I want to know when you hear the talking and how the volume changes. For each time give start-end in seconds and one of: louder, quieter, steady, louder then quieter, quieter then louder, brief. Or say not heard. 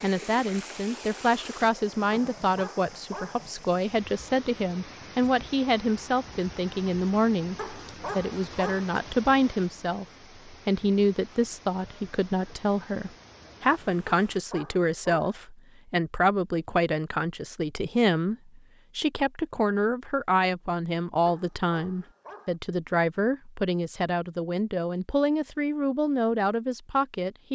0.0-27.5 steady.